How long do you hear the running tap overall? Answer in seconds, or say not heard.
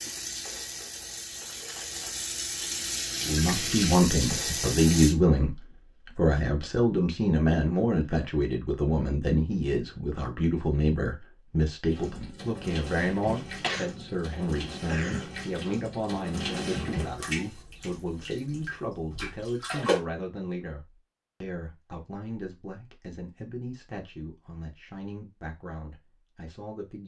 13 s.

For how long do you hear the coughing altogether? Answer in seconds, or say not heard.
2 s.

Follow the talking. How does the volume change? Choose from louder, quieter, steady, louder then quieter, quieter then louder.
quieter.